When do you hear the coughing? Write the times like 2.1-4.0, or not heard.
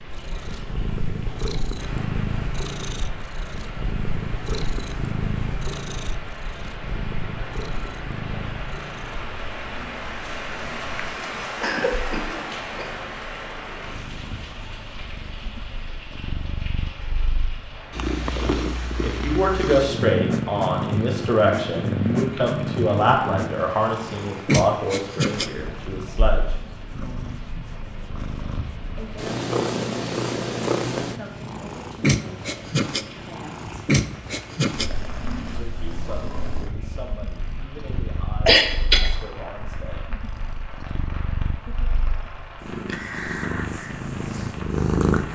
11.6-12.9, 38.5-39.1.